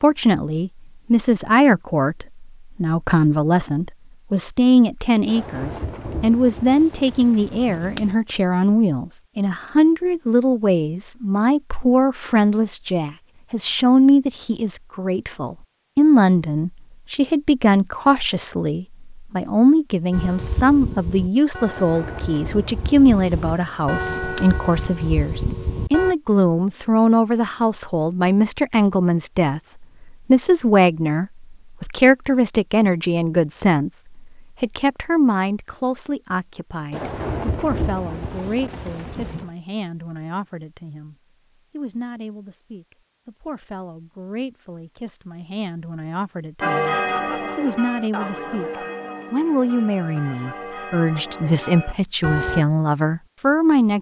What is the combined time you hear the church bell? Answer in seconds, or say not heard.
12 s.